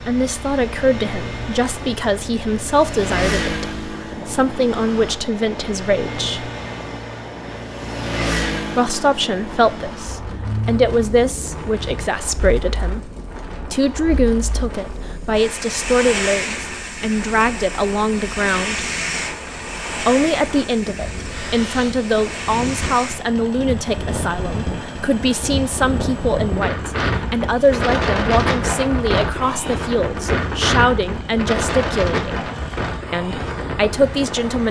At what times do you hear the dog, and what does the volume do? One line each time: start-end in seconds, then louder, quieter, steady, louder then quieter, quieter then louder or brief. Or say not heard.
not heard.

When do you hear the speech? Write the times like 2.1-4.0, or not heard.
0.1-6.5, 8.8-18.9, 20.0-32.5, 33.1-34.6.